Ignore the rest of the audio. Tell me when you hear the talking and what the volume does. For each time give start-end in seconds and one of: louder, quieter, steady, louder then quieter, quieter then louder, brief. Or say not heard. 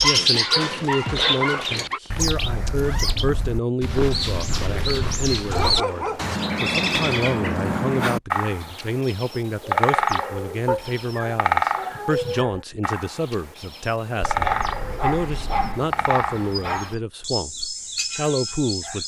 0.0-19.0 steady.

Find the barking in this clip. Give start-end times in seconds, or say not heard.
0.0-2.0, 5.5-6.3, 10.7-12.7, 14.4-17.0.